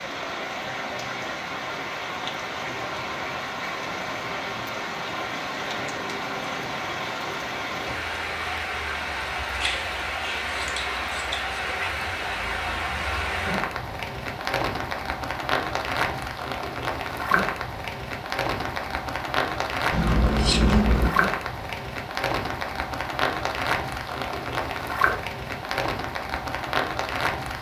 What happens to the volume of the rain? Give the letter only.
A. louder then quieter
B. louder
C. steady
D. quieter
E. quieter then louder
C.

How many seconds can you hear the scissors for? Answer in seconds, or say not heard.
3 s.